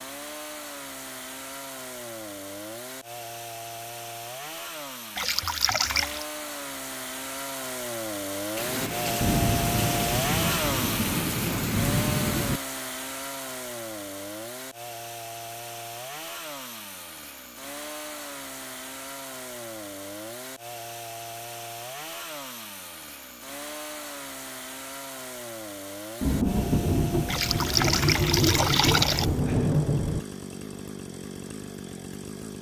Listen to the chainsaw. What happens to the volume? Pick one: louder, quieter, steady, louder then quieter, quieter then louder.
louder then quieter.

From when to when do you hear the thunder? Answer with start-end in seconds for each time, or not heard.
8.6-12.6, 26.2-30.2.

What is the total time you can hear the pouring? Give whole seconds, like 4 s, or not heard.
3 s.